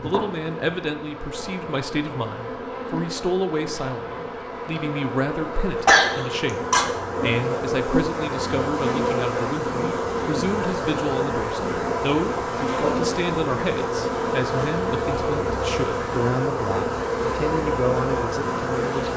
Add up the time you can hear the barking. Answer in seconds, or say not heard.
not heard.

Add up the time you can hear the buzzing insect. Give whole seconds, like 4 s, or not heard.
19 s.